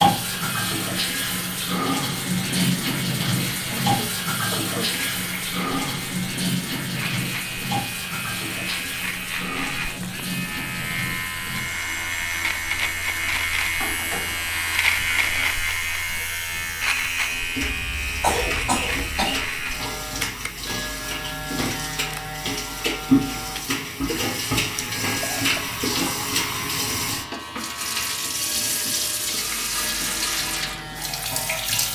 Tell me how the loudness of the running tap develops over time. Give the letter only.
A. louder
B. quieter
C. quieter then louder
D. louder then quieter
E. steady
C.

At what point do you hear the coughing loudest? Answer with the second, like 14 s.
18 s.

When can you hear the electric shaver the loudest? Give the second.
15 s.